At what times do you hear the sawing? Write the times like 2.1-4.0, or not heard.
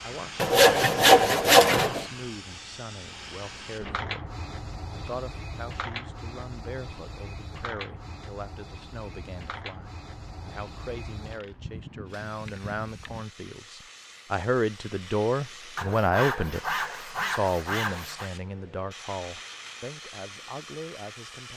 0.3-2.0, 15.8-18.3.